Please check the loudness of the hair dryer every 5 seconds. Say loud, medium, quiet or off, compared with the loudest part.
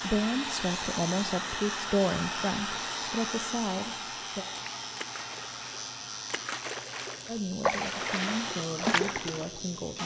loud, medium.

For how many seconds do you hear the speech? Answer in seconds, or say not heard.
7 s.